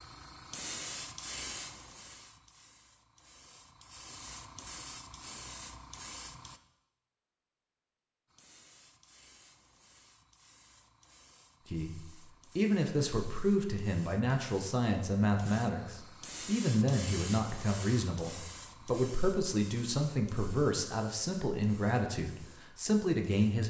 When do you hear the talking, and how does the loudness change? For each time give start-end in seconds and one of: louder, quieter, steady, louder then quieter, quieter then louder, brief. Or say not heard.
11.7-23.6 steady.